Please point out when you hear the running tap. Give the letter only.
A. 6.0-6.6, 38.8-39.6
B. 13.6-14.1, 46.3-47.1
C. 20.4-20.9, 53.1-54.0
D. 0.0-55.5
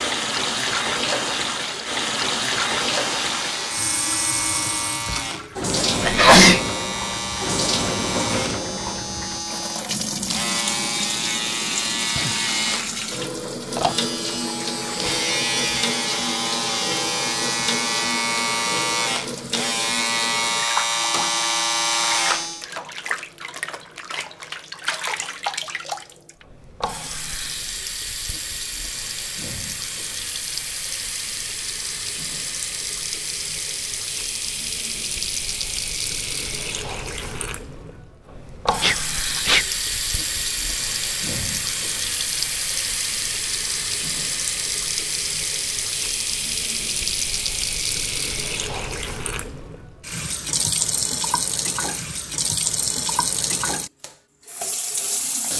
D.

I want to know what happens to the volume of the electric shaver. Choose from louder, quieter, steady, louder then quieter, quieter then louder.
louder.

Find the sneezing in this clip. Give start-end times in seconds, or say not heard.
6.0-6.6, 38.8-39.6.